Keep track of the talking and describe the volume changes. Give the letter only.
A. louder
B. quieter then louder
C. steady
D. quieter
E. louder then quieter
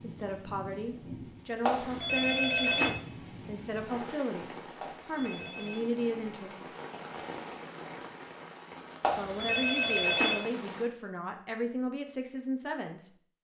C.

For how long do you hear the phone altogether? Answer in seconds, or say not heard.
4 s.